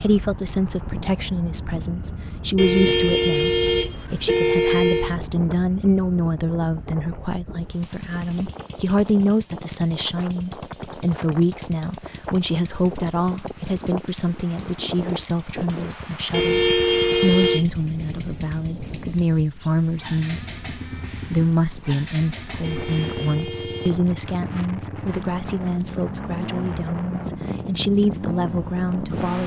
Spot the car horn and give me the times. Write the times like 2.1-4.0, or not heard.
2.5-5.2, 16.3-17.6, 22.6-24.1.